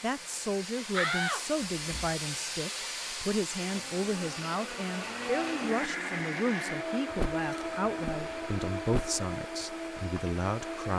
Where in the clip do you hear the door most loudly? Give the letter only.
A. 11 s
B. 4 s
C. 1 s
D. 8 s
C.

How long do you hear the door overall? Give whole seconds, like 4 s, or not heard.
3 s.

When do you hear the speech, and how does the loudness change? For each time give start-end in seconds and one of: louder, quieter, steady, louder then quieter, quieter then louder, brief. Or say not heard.
0.0-10.9 steady.